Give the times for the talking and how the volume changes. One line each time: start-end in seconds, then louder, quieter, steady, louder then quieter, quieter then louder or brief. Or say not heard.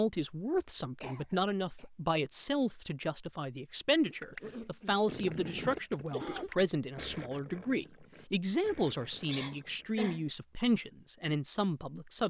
0.0-12.2 steady.